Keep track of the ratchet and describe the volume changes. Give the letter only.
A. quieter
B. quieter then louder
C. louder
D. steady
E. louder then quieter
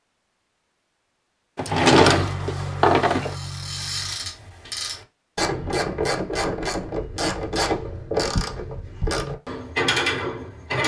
C.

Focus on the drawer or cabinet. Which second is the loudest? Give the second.
2 s.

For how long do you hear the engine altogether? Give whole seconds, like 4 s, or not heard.
2 s.